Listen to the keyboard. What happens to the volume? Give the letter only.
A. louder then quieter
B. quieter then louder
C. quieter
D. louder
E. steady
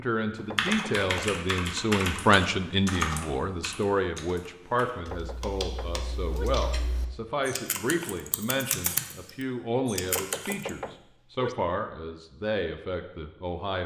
B.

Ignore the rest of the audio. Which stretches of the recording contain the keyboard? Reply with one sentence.
The keyboard can be heard from 0.3 to 10.7 s.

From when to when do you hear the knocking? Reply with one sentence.
The knocking can be heard from 0.3 to 1.1 s, from 5.0 to 6.5 s and from 10.0 to 11.6 s.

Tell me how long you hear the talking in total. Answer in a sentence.
You can hear the talking for 14 seconds altogether.